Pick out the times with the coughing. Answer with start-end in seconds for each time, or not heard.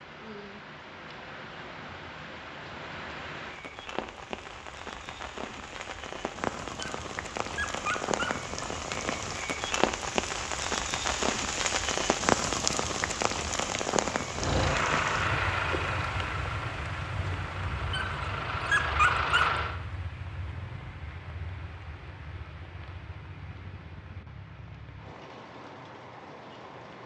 not heard.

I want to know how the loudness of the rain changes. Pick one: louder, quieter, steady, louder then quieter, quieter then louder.
louder then quieter.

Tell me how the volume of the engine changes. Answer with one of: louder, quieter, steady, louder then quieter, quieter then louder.
quieter then louder.